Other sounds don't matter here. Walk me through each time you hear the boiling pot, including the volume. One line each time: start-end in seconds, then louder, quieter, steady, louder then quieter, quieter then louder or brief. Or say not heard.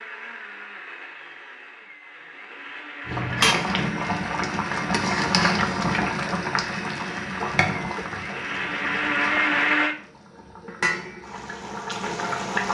3.0-12.7 quieter then louder.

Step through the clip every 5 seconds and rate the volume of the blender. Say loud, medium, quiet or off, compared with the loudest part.
medium, loud, off.